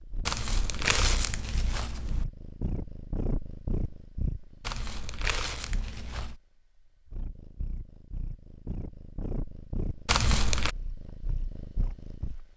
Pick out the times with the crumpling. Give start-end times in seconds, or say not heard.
0.2-2.2, 4.6-6.3, 10.1-10.8.